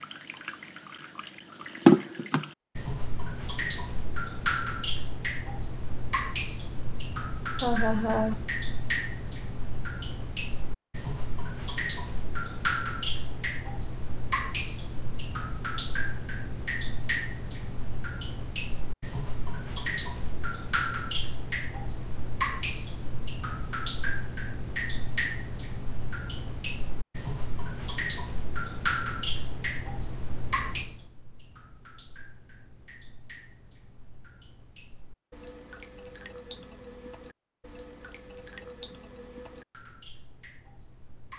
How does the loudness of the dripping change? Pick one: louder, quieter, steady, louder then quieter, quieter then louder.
quieter.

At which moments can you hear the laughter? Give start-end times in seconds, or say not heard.
7.6-8.4.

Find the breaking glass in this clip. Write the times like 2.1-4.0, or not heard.
not heard.